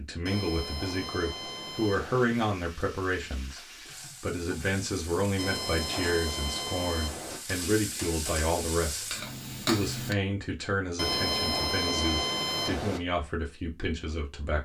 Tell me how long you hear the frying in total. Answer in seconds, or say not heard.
8 s.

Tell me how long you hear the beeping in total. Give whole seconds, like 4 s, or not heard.
6 s.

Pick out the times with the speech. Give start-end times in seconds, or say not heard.
0.0-14.6.